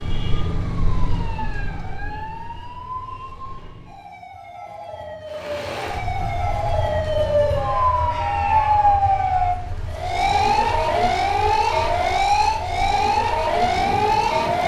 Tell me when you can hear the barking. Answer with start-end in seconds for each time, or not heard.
not heard.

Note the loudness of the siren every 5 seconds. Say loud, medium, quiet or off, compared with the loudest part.
quiet, loud, loud.